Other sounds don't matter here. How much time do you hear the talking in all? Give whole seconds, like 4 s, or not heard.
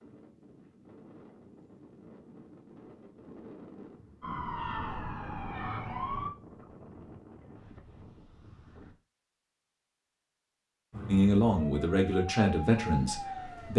3 s.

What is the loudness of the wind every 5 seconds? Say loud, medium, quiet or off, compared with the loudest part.
loud, loud, off.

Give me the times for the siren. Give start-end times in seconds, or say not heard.
4.2-6.3, 10.9-13.7.